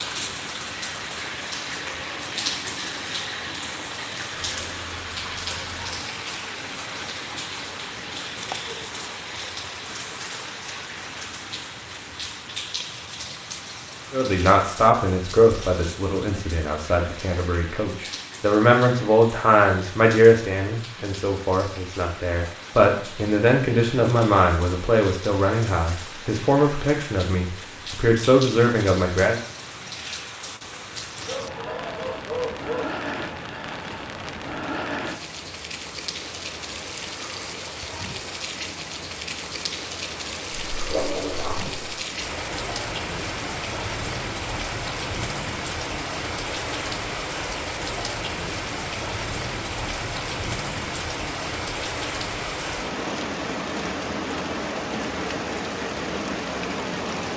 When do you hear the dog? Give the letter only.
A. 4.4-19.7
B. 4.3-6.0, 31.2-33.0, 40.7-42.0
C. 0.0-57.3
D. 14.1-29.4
B.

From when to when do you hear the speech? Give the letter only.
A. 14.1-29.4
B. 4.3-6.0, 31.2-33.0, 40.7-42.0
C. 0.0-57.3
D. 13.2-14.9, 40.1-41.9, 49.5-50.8
A.